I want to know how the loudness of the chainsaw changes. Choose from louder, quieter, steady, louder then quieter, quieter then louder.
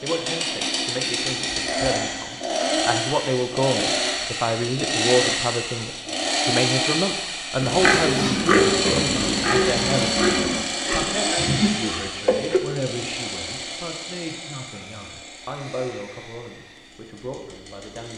quieter.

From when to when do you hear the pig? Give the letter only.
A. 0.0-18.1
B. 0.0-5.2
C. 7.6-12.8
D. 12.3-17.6
C.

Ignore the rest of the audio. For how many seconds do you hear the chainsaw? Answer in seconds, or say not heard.
18 s.